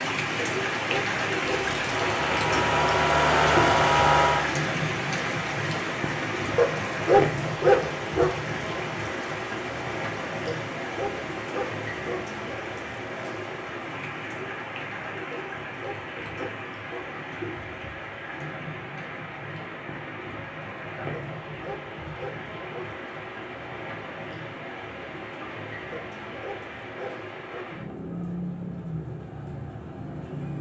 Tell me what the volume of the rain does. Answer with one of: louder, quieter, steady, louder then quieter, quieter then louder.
quieter.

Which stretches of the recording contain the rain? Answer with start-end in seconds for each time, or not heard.
0.0-30.5.